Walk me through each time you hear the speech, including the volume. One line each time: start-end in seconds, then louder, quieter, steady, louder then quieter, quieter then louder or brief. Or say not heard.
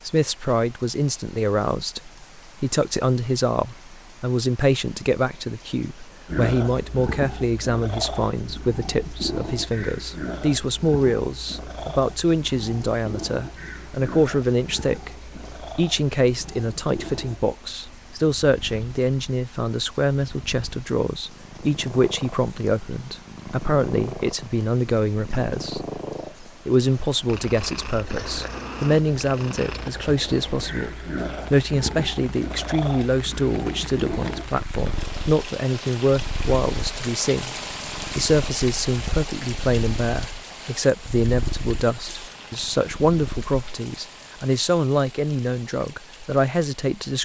0.1-47.2 steady.